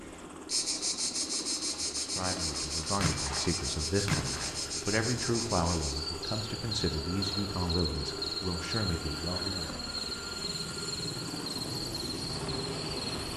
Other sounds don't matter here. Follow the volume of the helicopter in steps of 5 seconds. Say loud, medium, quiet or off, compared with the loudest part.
medium, loud, loud.